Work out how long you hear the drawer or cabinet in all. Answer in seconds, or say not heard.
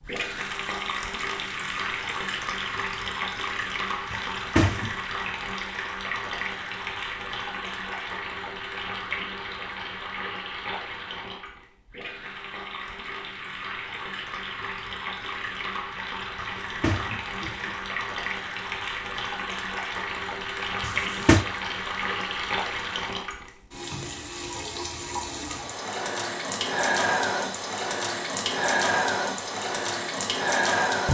3 s.